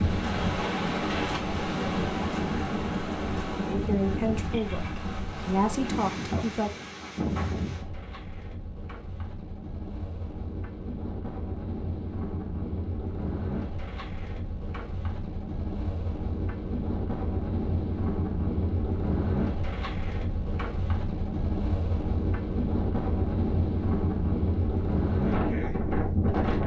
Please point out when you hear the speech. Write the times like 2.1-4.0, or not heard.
3.6-6.7.